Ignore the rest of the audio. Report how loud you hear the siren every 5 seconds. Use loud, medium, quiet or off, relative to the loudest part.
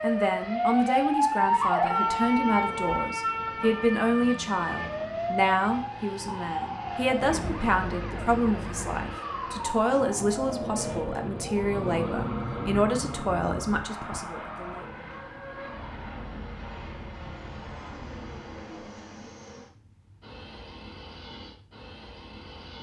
loud, medium, quiet, quiet, off.